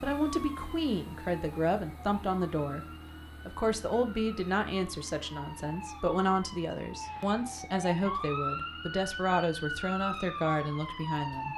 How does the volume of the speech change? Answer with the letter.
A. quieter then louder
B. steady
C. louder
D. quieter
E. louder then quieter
B.